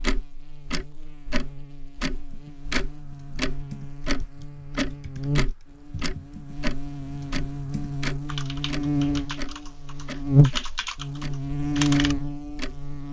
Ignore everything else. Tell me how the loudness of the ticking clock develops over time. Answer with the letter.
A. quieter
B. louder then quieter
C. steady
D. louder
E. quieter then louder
A.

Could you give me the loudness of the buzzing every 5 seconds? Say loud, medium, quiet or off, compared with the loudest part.
quiet, medium, loud.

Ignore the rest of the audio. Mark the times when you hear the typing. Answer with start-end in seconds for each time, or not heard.
2.2-12.2.